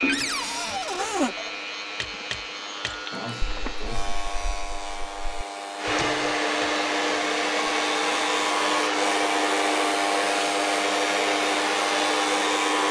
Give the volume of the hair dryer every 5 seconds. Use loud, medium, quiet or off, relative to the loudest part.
quiet, loud, loud.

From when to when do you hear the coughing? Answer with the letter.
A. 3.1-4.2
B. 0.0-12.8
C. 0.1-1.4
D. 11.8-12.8
A.